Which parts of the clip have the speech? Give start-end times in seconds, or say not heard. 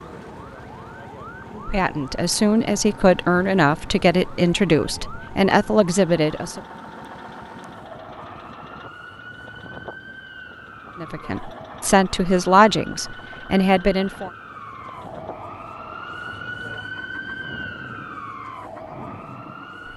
1.6-6.6, 10.9-14.3.